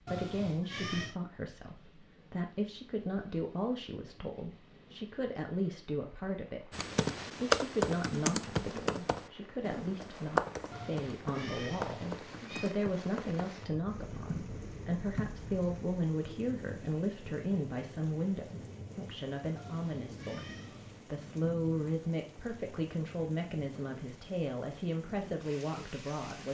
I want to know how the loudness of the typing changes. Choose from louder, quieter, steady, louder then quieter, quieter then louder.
quieter.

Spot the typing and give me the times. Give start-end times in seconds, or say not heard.
6.7-15.7.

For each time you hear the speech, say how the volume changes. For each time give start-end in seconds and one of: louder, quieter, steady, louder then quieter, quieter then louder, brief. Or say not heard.
0.0-26.4 steady.